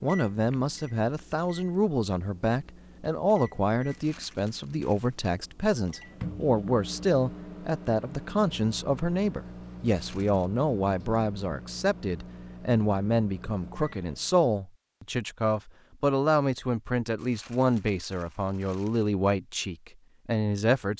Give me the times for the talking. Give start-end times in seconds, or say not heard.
0.0-20.9.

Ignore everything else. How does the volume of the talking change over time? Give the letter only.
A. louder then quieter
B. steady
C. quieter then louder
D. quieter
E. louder
B.